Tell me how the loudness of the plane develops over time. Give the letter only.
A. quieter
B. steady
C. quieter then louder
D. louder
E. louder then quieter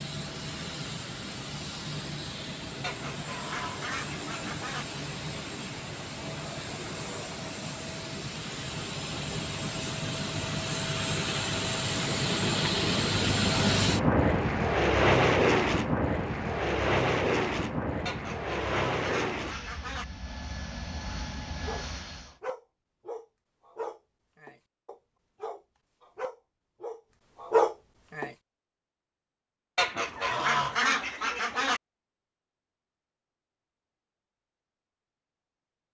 E.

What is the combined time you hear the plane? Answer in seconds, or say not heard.
22 s.